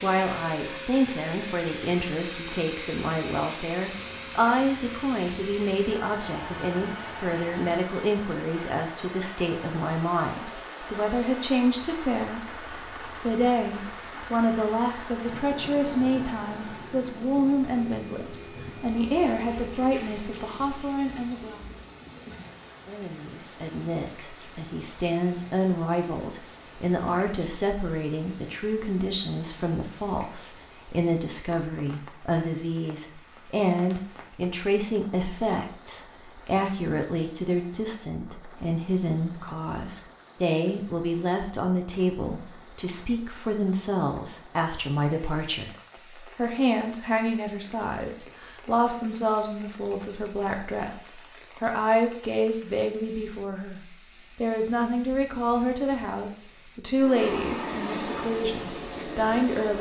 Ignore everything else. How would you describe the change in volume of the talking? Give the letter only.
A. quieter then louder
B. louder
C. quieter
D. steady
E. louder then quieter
D.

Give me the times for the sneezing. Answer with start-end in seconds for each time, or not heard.
not heard.